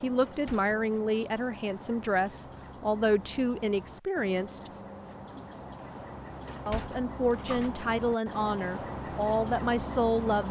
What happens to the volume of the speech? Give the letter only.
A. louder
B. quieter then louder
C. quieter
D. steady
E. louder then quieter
D.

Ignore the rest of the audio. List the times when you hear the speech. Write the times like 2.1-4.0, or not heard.
0.0-4.7, 6.7-10.4.